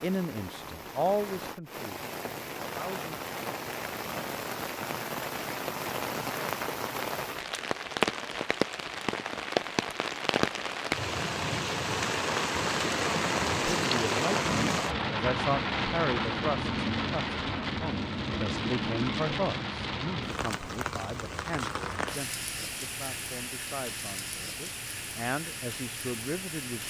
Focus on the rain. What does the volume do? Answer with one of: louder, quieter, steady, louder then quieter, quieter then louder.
louder then quieter.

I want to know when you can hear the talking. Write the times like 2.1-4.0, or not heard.
0.0-3.1, 13.7-26.8.